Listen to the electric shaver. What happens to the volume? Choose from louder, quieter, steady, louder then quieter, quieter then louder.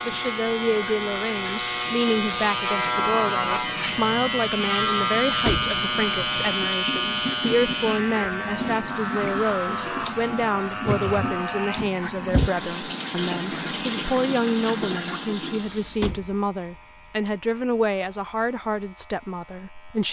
quieter.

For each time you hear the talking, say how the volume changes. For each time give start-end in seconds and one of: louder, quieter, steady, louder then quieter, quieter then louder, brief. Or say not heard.
0.1-20.0 steady.